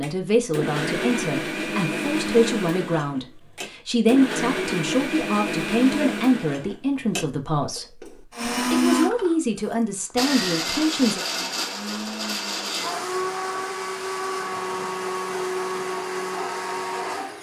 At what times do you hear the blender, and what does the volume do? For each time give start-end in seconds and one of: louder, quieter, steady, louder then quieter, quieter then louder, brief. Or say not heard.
0.0-17.3 steady.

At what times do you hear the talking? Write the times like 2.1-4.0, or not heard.
0.0-11.2.